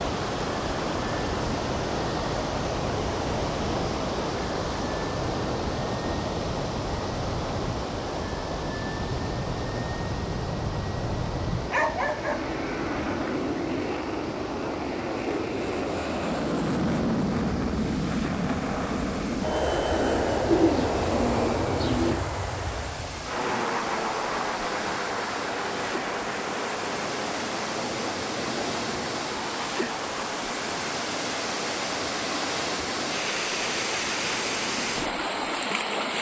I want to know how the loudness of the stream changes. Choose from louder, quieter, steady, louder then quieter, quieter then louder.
quieter then louder.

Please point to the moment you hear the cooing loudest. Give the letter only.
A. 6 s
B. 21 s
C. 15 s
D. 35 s
B.